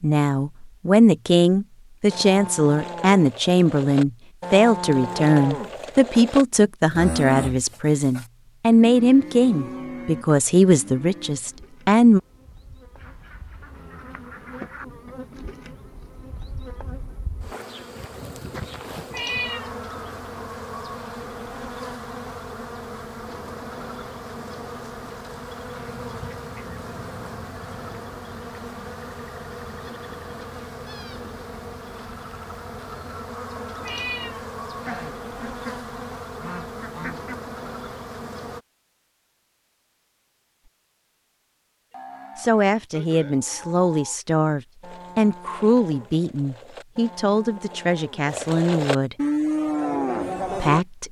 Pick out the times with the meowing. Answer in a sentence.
The meowing can be heard from 19.1 to 19.8 s and from 33.8 to 34.5 s.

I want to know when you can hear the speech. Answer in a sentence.
The speech can be heard from 0.0 to 12.2 s, from 42.4 to 49.1 s and from 50.5 to 51.0 s.